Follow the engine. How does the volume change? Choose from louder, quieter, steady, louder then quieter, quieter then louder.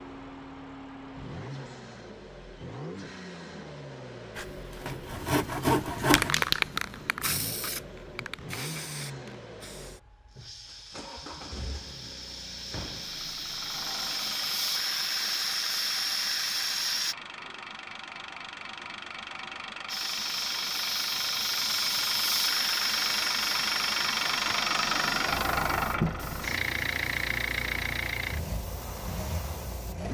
louder.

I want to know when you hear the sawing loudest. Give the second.
6 s.